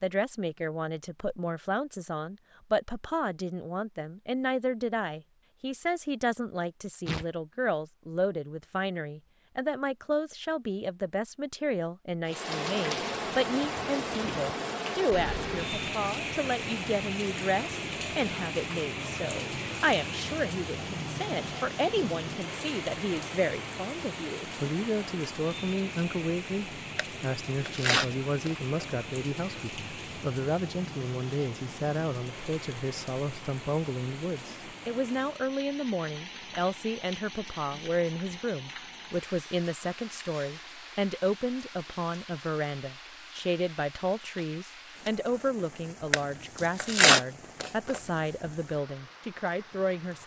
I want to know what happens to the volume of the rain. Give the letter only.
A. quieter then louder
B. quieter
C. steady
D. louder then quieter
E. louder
B.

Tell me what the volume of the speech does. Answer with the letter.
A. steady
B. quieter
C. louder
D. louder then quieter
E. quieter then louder
A.